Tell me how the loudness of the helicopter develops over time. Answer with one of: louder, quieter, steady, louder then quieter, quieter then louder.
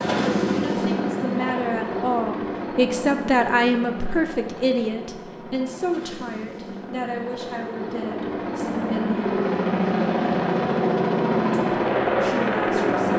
quieter then louder.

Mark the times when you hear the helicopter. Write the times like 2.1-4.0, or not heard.
0.0-13.1.